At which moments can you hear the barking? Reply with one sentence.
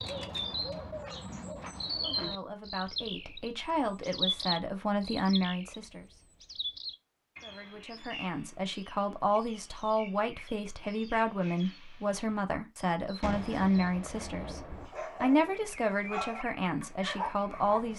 You can hear the barking from 14.8 to 17.9 s.